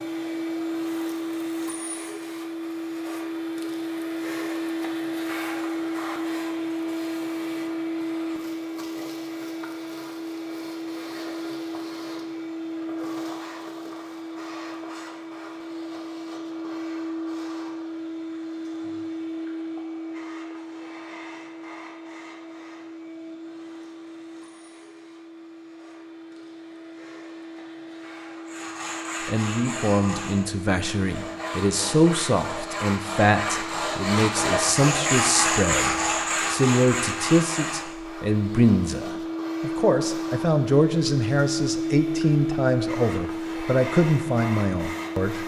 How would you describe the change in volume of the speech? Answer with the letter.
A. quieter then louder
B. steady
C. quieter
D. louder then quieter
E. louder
B.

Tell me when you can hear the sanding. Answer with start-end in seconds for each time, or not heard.
28.4-38.0.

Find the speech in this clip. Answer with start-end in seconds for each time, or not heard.
29.2-45.4.